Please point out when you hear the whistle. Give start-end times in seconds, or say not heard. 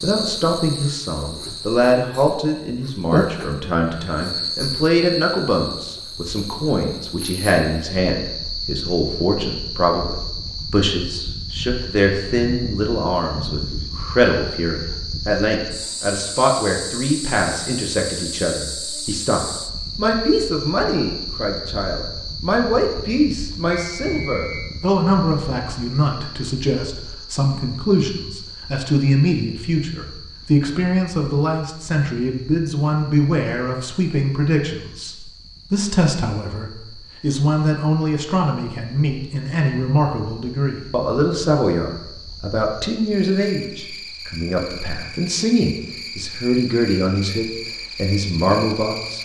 23.7-24.7.